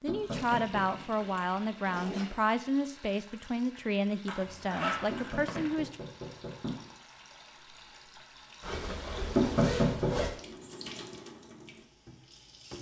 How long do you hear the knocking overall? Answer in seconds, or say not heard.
3 s.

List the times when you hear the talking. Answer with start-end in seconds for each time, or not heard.
0.0-6.0.